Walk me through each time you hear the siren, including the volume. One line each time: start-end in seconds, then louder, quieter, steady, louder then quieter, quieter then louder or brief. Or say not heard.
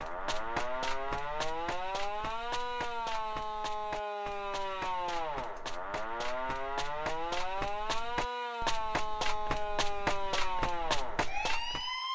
0.0-12.0 steady.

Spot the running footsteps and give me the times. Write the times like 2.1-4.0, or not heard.
0.0-11.9.